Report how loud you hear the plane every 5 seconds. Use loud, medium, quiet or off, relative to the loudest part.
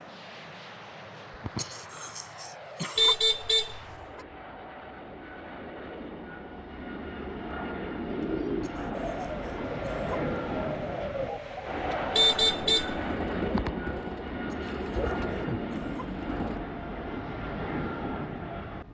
medium, loud, loud, loud.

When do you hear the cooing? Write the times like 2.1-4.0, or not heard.
8.1-16.6.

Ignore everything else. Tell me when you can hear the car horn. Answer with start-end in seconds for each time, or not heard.
3.0-4.2, 12.2-13.1.